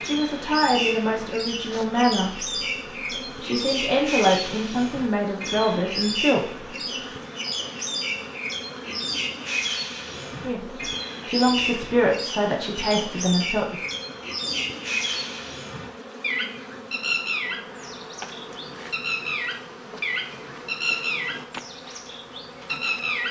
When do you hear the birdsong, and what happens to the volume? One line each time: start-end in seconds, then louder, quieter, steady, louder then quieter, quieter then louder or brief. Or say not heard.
0.0-23.2 steady.